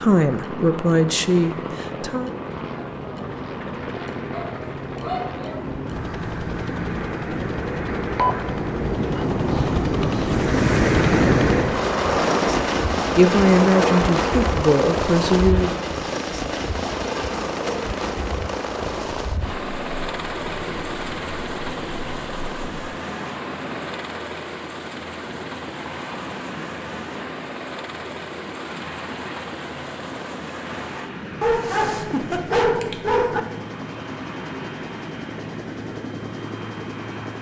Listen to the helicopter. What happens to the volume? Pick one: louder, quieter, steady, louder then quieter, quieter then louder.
louder then quieter.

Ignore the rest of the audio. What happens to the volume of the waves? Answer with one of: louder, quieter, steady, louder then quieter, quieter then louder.
louder then quieter.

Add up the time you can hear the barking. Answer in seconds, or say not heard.
3 s.